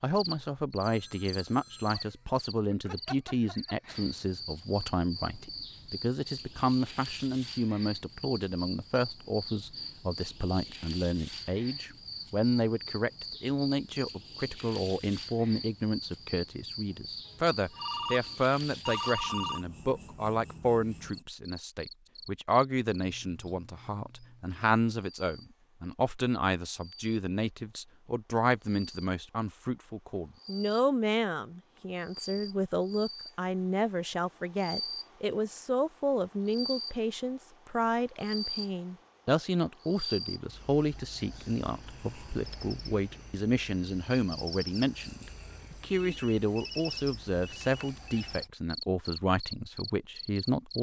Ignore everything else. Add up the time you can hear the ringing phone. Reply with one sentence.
The ringing phone can be heard for 6 seconds in total.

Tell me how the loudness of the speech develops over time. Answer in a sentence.
The loudness of the speech stays about the same.